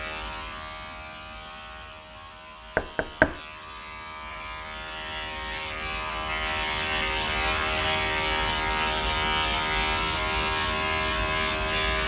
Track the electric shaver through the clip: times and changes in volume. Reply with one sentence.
The electric shaver can be heard from 0.0 to 12.0 s, getting louder.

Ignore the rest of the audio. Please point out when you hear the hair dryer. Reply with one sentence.
You can't hear the hair dryer here.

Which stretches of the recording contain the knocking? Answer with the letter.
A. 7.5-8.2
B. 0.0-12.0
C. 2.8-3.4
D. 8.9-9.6
C.